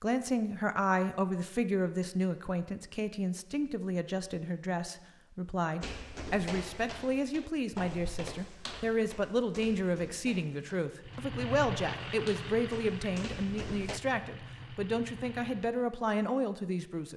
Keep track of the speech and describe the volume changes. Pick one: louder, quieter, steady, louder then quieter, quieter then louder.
steady.